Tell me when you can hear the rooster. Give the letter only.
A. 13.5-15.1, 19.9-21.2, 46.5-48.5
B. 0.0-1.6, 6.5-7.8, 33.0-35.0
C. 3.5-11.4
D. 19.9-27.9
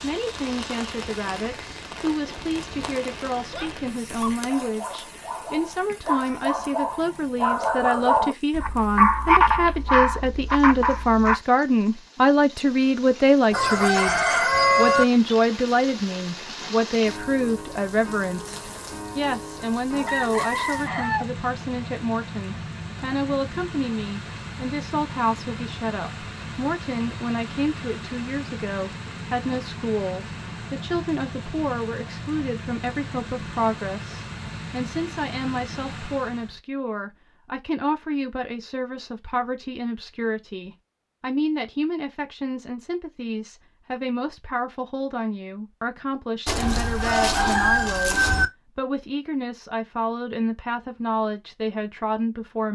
A.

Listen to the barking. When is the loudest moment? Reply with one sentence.
The loudest moment of the barking is at 9 seconds.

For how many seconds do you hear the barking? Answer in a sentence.
You can hear the barking for 8 seconds altogether.